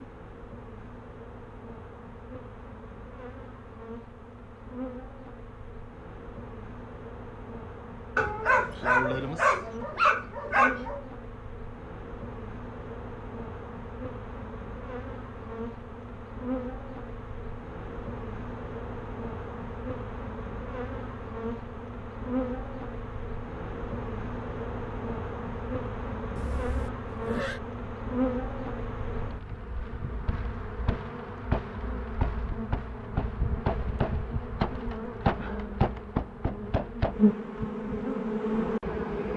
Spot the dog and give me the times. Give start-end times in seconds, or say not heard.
8.2-11.0.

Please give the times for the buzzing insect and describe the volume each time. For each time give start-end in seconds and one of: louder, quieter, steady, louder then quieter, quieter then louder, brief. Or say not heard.
0.0-39.3 louder.